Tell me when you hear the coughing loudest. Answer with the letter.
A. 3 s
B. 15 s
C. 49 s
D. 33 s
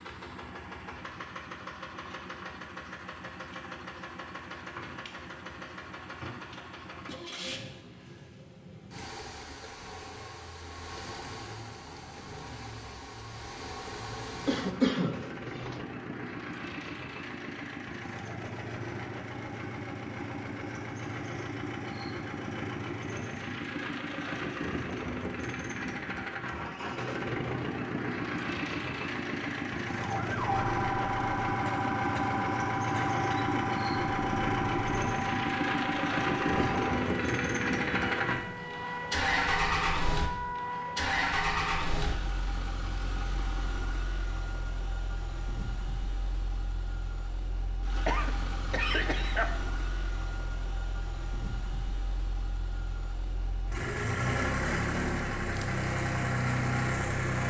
B.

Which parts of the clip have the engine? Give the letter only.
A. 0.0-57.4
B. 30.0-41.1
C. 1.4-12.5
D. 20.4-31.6
A.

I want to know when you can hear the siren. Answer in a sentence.
The siren can be heard from 30.0 to 41.1 s.